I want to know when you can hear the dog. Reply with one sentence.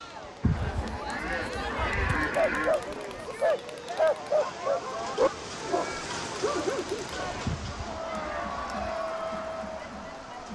You can hear the dog from 1.6 to 7.2 s.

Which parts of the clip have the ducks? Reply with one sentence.
The ducks can be heard from 0.4 to 2.8 s and from 7.5 to 9.0 s.